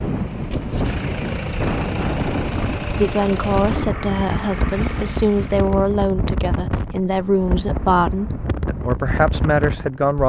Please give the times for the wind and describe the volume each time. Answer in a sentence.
The wind can be heard from 0.0 to 10.2 s, at a steady volume.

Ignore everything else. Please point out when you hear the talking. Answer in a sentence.
You can hear the talking from 2.9 to 10.2 s.